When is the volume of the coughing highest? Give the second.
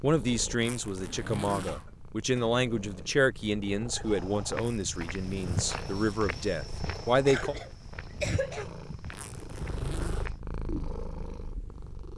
8 s.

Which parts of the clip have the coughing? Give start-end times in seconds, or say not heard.
1.6-2.5, 7.2-8.8.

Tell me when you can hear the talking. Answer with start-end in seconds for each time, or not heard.
0.0-7.5.